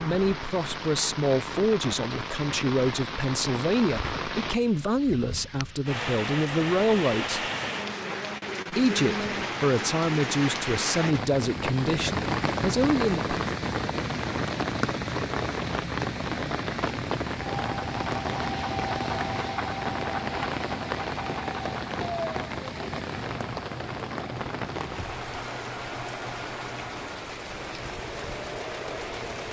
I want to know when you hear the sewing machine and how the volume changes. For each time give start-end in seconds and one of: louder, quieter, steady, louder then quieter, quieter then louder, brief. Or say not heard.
17.5-29.4 quieter.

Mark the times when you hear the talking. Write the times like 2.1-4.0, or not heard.
0.0-7.5, 8.7-13.4.